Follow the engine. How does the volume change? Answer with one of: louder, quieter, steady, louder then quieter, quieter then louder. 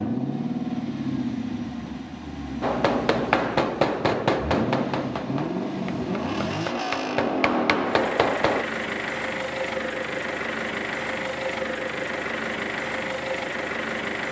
steady.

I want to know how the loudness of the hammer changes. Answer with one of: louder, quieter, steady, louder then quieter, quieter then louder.
quieter then louder.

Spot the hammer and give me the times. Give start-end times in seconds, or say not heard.
2.6-8.7.